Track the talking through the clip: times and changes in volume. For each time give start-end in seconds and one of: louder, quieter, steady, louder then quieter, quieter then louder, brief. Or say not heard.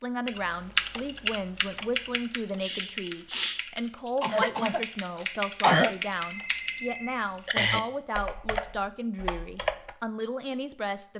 0.0-11.1 steady.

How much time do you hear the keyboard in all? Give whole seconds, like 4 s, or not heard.
10 s.